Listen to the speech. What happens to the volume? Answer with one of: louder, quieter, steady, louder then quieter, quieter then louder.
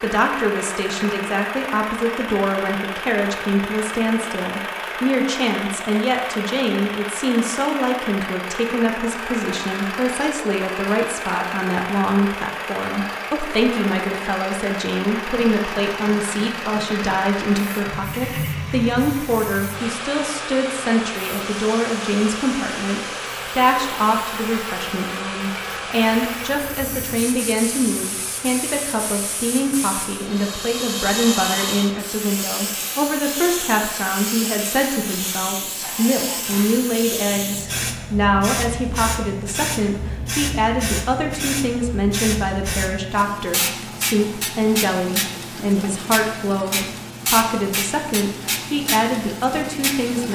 steady.